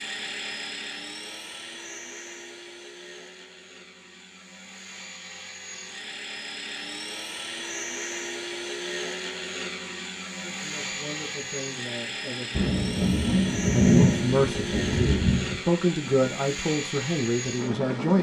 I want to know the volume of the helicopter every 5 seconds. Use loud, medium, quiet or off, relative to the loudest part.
medium, loud, loud, loud.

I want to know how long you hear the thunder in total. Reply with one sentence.
The thunder can be heard for 3 seconds in total.